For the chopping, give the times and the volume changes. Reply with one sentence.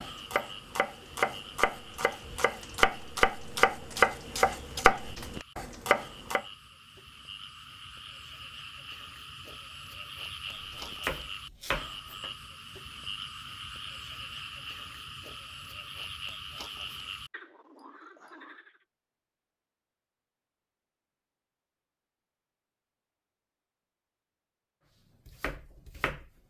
The chopping can be heard from 0.0 to 6.5 s, getting louder then quieter; briefly from 10.6 to 12.3 s; and briefly from 25.2 to 26.3 s.